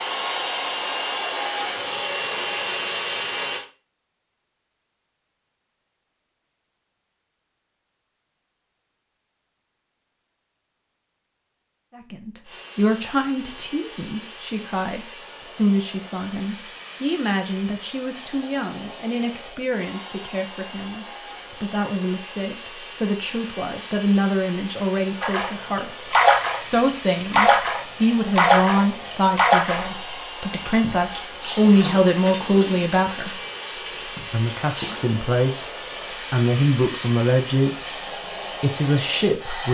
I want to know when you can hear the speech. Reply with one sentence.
You can hear the speech from 11.9 to 33.4 s, from 34.3 to 37.9 s and from 38.6 to 39.6 s.